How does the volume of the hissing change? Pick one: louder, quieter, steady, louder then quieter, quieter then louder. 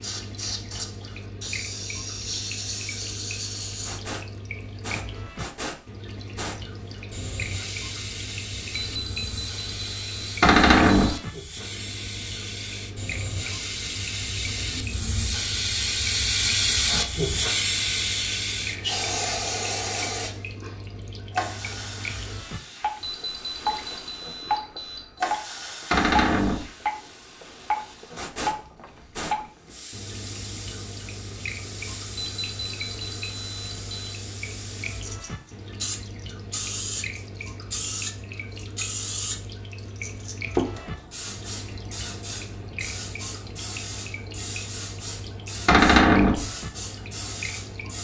louder then quieter.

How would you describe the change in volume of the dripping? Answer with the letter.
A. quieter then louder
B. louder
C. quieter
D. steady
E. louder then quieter
E.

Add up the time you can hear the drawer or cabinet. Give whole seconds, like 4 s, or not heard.
2 s.